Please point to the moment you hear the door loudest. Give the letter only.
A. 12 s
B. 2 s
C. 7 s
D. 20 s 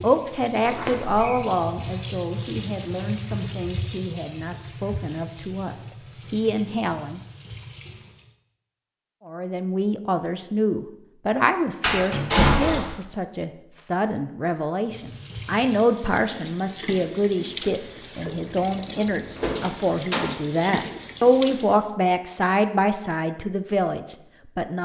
A.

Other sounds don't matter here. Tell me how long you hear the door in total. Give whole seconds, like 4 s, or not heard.
3 s.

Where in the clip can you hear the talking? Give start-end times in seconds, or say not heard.
0.0-7.2, 9.2-24.7.